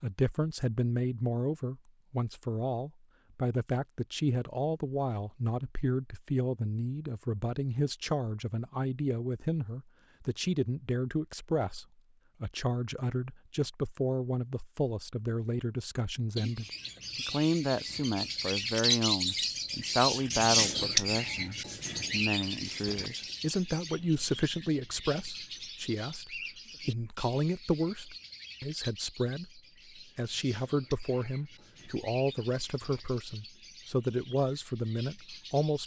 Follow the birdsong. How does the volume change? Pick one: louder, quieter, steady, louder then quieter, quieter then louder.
quieter.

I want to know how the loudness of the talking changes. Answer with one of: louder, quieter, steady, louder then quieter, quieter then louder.
steady.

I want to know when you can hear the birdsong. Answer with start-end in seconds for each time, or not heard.
16.4-35.8.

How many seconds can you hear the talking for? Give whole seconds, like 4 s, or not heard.
36 s.